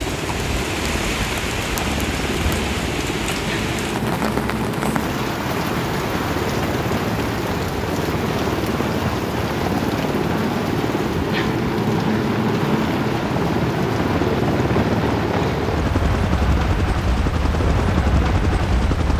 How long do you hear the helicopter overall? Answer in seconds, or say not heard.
19 s.